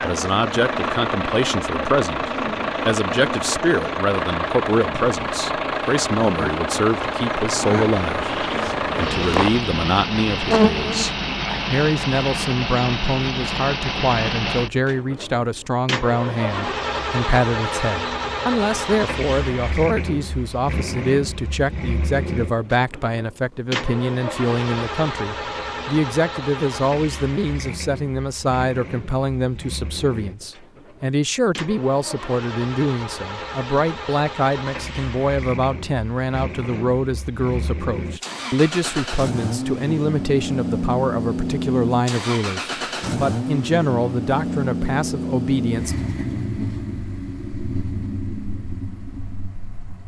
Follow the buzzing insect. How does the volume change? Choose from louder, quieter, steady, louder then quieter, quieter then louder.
louder.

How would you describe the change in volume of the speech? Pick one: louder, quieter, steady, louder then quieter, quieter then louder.
steady.